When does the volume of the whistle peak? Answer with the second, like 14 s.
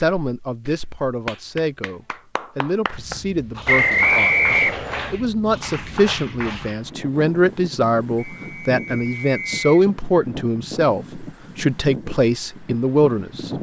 4 s.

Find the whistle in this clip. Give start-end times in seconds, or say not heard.
3.6-5.2, 8.2-9.7.